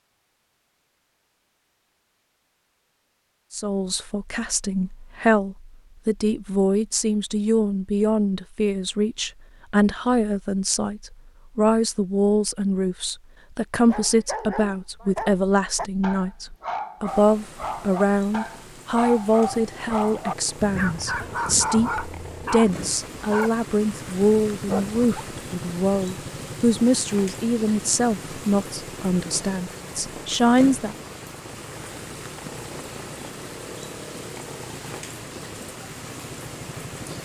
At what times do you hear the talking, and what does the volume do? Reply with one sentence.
The talking can be heard from 3.5 to 30.9 s, at a steady volume.